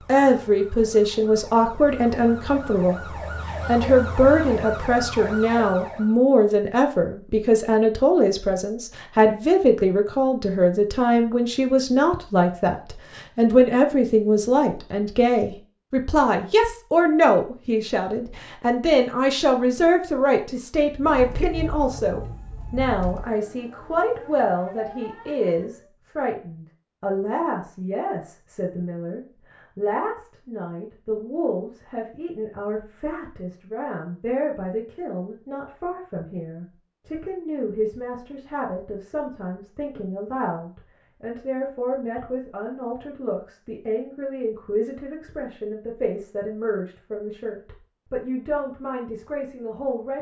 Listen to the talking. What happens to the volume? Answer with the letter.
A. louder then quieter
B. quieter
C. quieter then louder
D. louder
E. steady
B.